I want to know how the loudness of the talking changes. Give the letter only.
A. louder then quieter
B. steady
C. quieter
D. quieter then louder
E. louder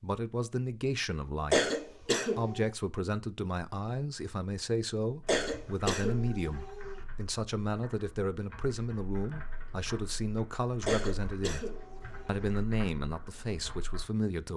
B.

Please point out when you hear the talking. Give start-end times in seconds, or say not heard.
0.0-14.5.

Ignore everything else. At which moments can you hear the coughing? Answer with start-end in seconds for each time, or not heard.
1.5-2.6, 5.2-7.0, 10.8-12.6.